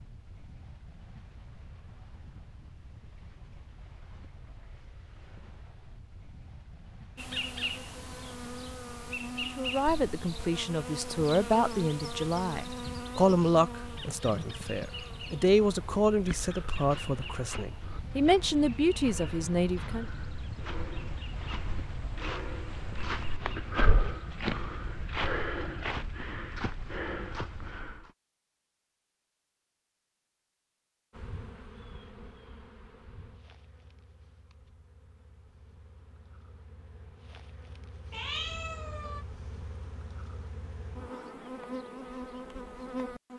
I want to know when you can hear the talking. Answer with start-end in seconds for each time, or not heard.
9.6-20.1.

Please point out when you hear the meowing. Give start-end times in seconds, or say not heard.
38.1-39.2.